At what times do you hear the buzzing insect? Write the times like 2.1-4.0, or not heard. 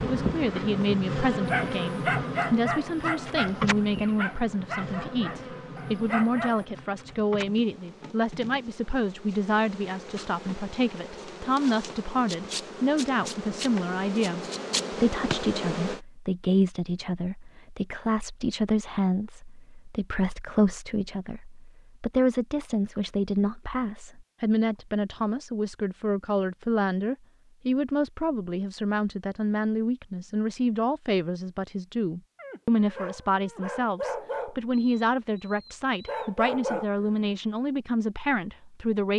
0.0-16.0.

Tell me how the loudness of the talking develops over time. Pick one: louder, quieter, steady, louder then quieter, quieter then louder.
steady.